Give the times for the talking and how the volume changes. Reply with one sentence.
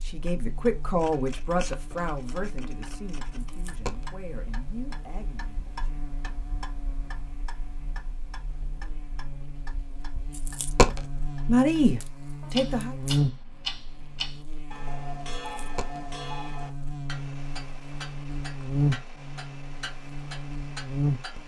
The talking can be heard from 0.0 to 6.0 s, getting quieter; and briefly from 11.4 to 12.9 s.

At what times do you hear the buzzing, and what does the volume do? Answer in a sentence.
The buzzing can be heard from 0.0 to 21.4 s, getting louder.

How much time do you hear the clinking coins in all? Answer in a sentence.
You can hear the clinking coins for 2 seconds altogether.